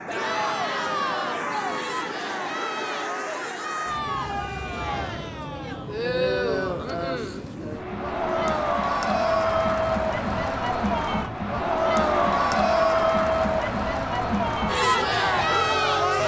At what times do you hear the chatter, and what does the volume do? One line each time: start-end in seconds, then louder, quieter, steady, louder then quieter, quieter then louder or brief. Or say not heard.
0.1-16.2 louder.